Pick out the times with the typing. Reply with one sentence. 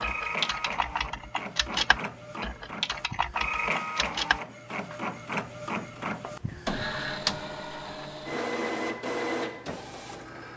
You can hear the typing from 0.0 to 4.4 s.